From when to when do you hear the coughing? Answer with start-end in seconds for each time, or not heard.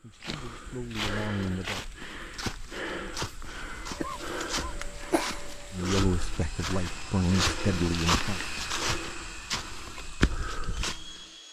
4.0-5.5.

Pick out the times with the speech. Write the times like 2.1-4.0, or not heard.
0.0-1.8, 5.7-8.4.